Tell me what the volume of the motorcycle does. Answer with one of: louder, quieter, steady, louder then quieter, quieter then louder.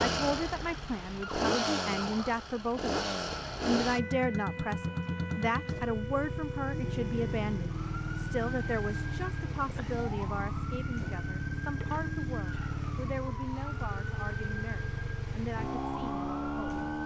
steady.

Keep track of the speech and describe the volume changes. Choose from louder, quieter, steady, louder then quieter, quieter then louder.
quieter.